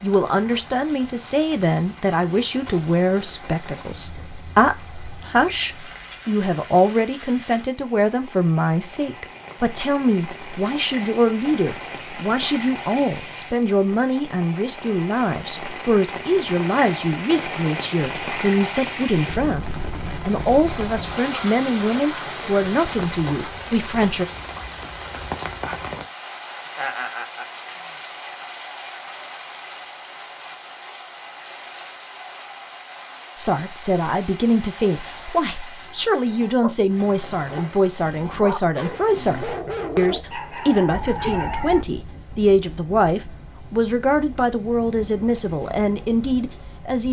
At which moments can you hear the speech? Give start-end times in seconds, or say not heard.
0.0-24.2, 33.4-47.0.